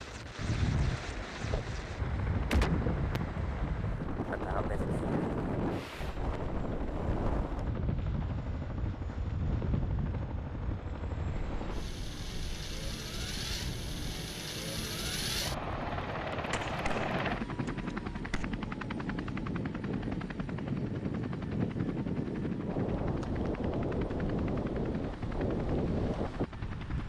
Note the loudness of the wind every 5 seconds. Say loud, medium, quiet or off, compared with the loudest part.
loud, loud, medium, medium, loud, loud.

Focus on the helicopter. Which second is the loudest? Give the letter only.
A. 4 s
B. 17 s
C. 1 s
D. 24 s
B.